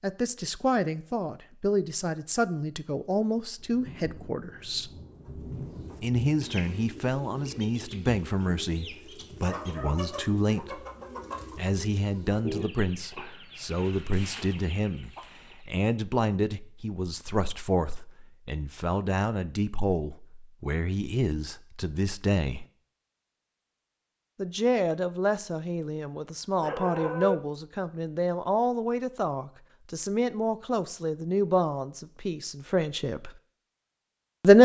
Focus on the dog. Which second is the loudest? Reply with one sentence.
The loudest moment of the dog is at 27 seconds.